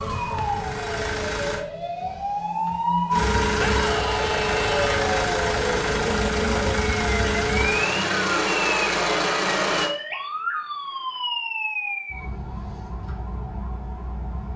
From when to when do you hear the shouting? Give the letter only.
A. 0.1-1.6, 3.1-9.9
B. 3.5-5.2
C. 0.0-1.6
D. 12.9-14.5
B.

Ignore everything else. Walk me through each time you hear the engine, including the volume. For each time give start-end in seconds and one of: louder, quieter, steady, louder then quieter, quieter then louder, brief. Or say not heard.
0.1-1.6 brief
3.1-9.9 steady.